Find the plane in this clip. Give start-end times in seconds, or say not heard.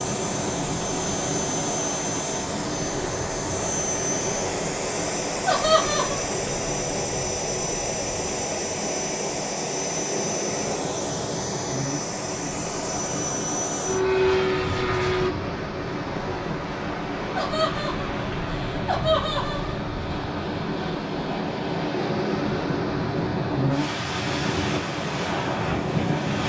0.0-15.3.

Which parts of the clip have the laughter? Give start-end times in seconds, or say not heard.
5.5-6.2, 17.4-19.8.